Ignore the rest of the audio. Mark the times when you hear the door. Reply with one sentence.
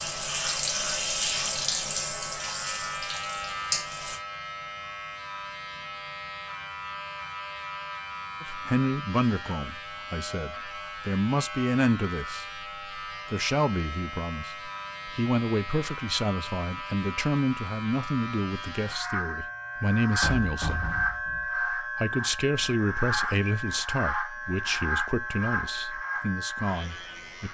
The door can be heard from 20.2 to 21.4 s.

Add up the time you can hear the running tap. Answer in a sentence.
The running tap can be heard for 4 seconds in total.